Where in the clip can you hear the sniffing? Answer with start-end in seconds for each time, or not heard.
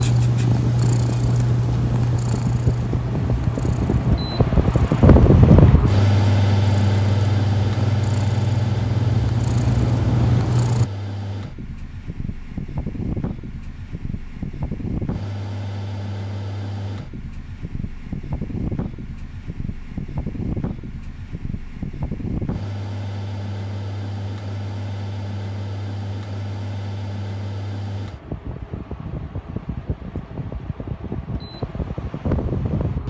not heard.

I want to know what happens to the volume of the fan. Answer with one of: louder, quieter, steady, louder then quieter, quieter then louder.
quieter.